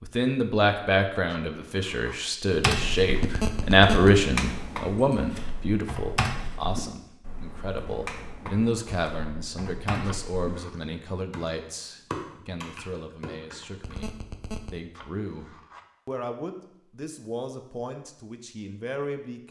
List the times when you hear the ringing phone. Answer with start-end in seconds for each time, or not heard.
3.2-4.1, 13.8-14.8.